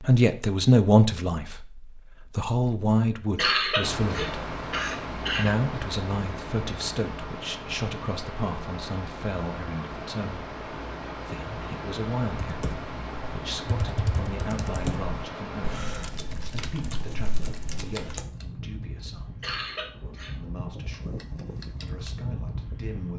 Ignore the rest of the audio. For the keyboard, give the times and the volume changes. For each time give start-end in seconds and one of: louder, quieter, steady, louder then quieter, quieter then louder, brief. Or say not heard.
12.2-18.2 louder then quieter.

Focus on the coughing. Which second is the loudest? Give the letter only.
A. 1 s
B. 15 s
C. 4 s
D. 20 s
C.